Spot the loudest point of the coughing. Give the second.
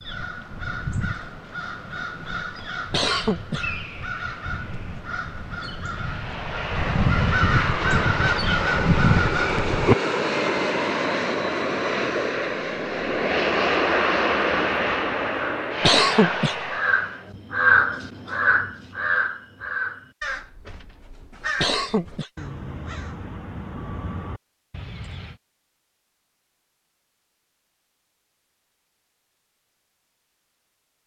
16 s.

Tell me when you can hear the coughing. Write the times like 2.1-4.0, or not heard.
2.9-3.8, 15.8-16.7, 21.6-22.3.